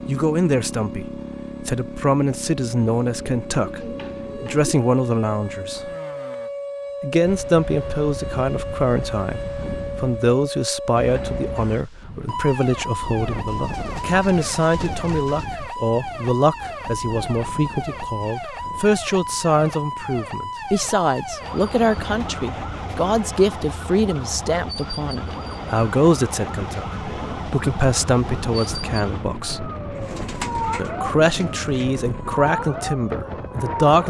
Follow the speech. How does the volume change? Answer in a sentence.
The volume of the speech stays about the same.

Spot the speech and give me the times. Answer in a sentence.
The speech can be heard from 0.1 to 5.9 s, from 7.0 to 29.7 s and from 30.8 to 34.0 s.